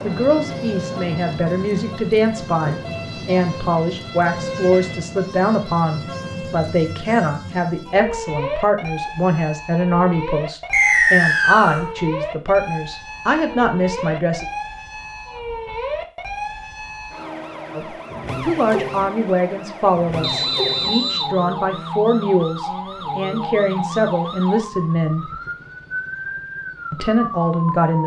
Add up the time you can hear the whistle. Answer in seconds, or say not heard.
2 s.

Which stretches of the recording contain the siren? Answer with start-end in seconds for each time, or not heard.
0.0-28.0.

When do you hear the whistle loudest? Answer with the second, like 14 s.
11 s.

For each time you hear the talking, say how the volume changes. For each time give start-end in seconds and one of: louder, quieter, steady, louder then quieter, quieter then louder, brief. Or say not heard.
0.0-14.4 steady
17.8-25.3 steady
26.9-28.0 brief.